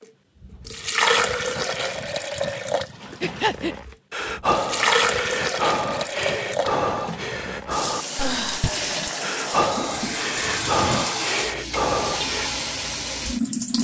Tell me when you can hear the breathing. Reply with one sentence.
You can hear the breathing from 3.2 to 12.5 s.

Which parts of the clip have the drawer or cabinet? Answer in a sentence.
The drawer or cabinet can be heard from 9.6 to 11.1 s.